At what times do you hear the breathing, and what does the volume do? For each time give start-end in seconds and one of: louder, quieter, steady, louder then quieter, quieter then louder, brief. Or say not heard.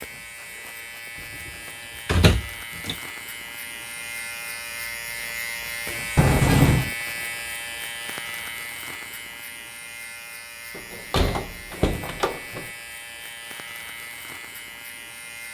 not heard.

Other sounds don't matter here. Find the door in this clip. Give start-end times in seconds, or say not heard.
2.0-3.0, 6.2-6.9, 10.8-12.7.